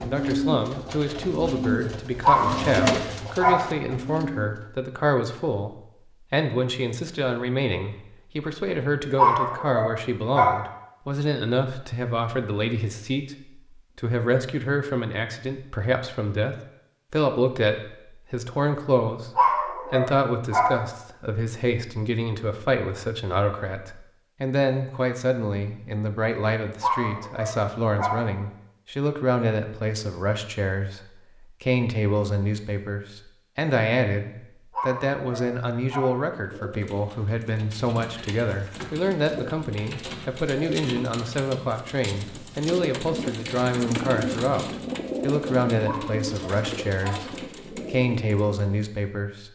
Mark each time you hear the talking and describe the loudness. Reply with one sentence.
The talking can be heard from 0.0 to 49.4 s, at a steady volume.